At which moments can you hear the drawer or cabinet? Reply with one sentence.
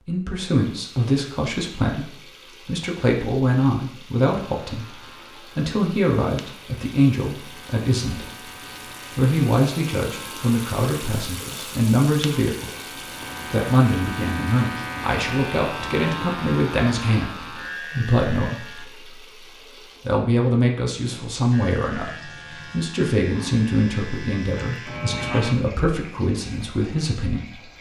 The drawer or cabinet can't be heard in this clip.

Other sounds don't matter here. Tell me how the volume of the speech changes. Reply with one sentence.
The volume of the speech stays about the same.